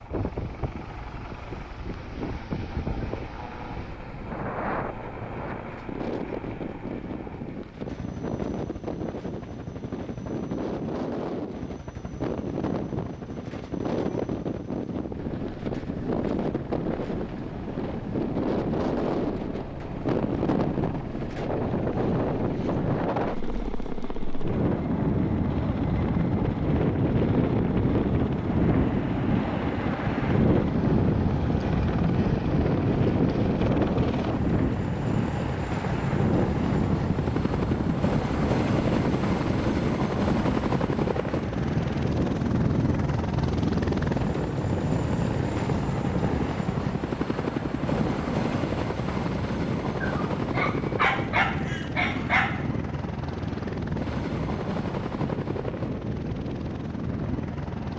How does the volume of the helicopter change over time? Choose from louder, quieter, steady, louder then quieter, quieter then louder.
louder.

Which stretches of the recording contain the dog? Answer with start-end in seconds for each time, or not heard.
50.0-52.8.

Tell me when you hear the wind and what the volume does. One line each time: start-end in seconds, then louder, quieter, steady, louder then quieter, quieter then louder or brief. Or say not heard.
0.0-57.9 louder then quieter.